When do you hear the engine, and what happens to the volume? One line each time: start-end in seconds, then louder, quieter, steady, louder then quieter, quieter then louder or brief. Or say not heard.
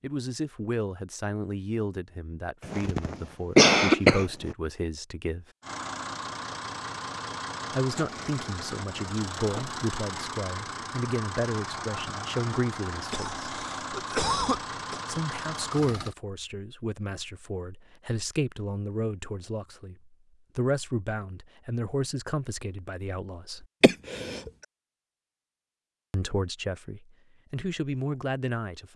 5.6-16.1 steady.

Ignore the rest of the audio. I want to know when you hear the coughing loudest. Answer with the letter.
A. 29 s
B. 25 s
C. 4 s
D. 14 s
C.